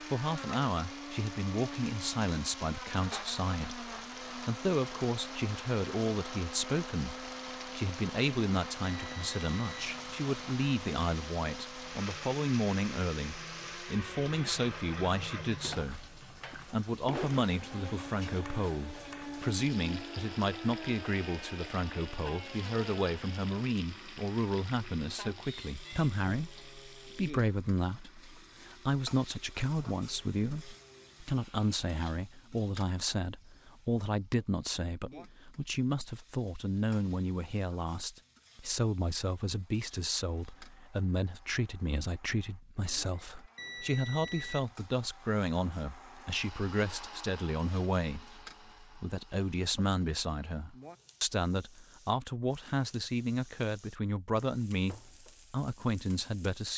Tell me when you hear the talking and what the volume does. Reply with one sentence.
You can hear the talking from 0.0 to 56.7 s, at a steady volume.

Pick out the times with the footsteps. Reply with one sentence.
The footsteps can't be heard in this clip.